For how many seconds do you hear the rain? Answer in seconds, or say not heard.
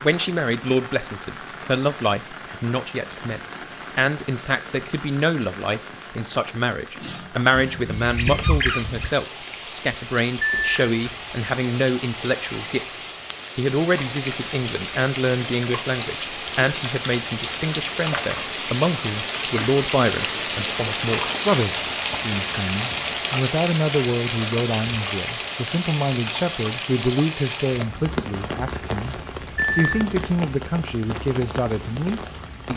33 s.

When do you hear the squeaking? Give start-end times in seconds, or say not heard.
7.5-9.2.